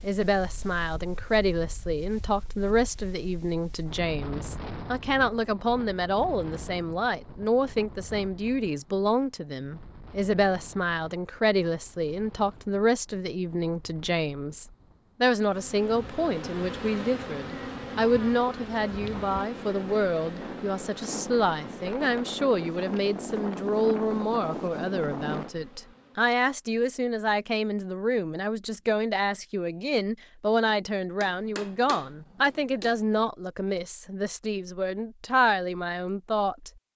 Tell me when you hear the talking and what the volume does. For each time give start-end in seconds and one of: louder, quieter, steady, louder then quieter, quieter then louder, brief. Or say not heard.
0.0-36.7 steady.